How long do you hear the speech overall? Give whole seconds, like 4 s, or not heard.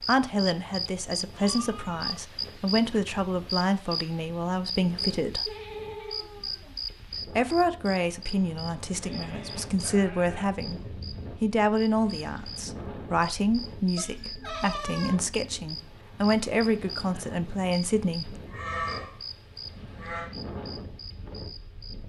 16 s.